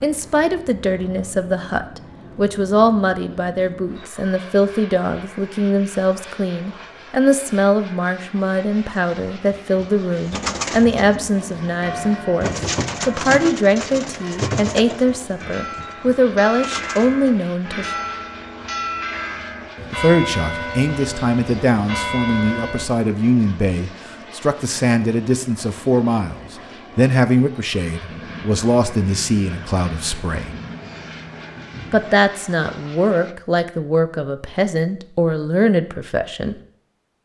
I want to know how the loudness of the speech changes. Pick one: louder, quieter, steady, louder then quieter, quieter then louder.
steady.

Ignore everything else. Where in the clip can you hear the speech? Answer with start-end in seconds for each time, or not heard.
0.0-17.9, 19.9-30.6, 31.9-36.5.